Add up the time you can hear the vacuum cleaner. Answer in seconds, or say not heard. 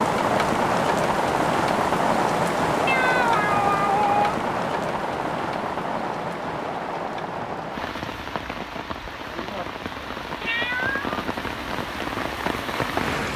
not heard.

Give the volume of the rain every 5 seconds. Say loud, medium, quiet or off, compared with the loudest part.
loud, medium, medium.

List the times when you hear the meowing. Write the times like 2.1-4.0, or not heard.
2.9-4.3, 10.4-11.2.